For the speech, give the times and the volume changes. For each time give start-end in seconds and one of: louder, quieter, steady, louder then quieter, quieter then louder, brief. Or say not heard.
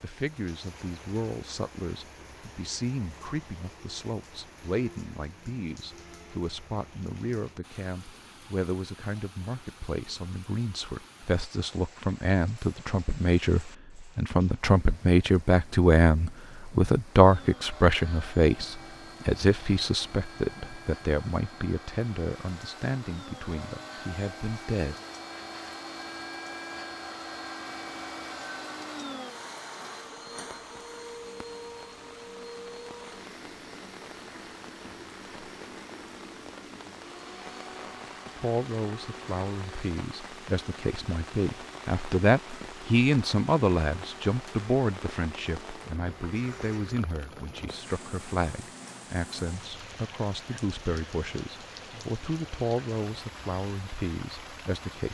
0.0-24.9 louder then quieter
38.4-55.0 louder then quieter.